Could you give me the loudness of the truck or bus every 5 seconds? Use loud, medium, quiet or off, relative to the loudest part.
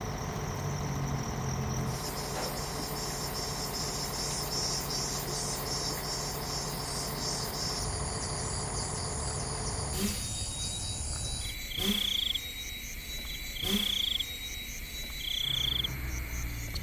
loud, loud, loud, medium.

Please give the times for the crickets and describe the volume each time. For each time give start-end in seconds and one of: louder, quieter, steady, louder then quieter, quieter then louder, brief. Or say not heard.
0.0-16.7 steady.